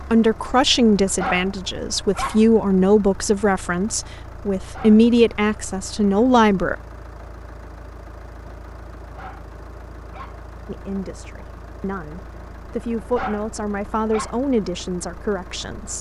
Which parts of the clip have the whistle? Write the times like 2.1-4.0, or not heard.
not heard.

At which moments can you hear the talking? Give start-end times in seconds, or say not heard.
0.1-6.8, 10.7-15.9.